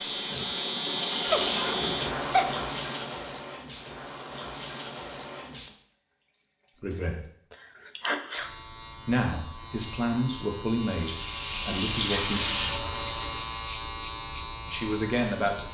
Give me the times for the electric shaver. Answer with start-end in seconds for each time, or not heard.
0.0-2.1, 8.3-15.6.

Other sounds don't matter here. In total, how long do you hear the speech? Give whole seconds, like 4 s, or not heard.
5 s.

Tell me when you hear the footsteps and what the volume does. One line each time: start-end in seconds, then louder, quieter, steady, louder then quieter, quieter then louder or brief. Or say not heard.
not heard.